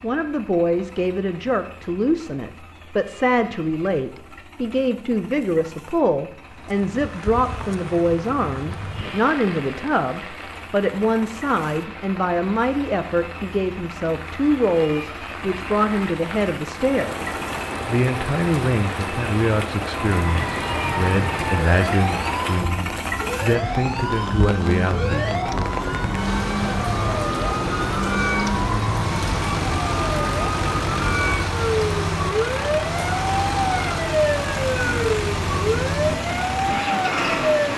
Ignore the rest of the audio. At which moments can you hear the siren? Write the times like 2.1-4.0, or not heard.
20.0-37.7.